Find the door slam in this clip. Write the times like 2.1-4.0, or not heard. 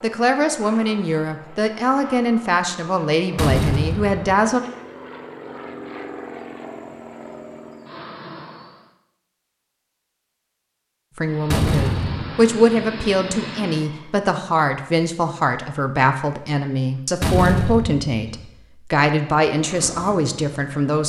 3.4-4.5, 11.5-12.4, 17.2-18.4.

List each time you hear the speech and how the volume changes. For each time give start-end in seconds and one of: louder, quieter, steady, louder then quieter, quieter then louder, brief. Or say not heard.
0.0-4.6 steady
11.2-21.0 steady.